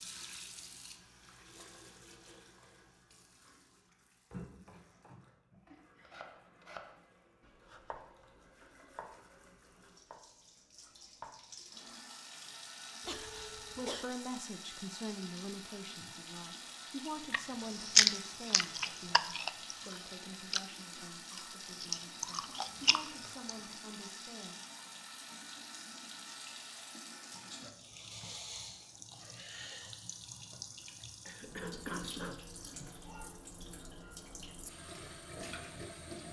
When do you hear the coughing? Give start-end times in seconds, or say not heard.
13.0-14.1, 31.2-33.0.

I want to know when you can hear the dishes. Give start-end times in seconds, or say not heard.
not heard.